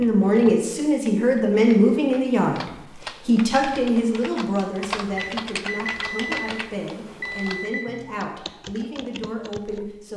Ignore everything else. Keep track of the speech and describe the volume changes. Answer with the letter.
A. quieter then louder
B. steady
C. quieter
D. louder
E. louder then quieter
C.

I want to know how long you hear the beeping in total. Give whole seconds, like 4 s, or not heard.
3 s.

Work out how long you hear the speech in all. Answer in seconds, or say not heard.
10 s.